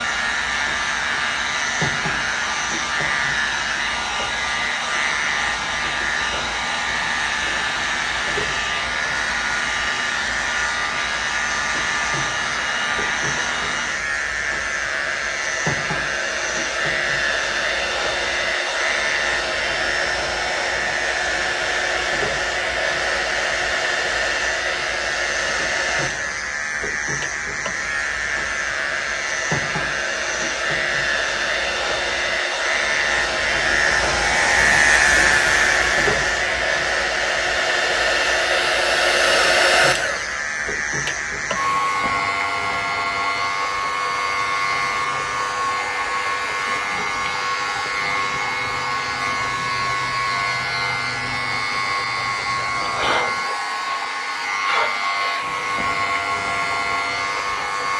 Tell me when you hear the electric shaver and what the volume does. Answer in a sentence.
You can hear the electric shaver from 0.0 to 57.9 s, at a steady volume.